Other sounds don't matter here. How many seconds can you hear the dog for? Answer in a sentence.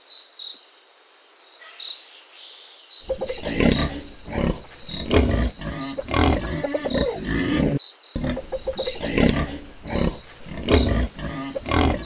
You can't hear the dog here.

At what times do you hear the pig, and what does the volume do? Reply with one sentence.
The pig can be heard from 3.0 to 12.0 s, at a steady volume.